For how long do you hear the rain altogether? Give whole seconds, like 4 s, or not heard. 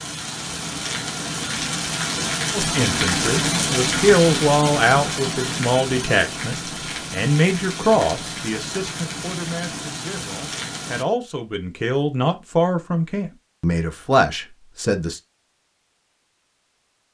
11 s.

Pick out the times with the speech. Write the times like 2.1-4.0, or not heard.
2.5-15.2.